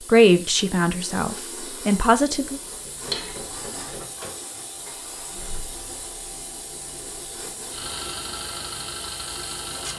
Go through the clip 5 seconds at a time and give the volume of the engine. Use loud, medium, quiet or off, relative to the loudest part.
medium, loud.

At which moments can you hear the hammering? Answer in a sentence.
The hammering can be heard from 2.8 to 4.4 s.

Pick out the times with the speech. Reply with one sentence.
The speech can be heard from 0.1 to 2.6 s.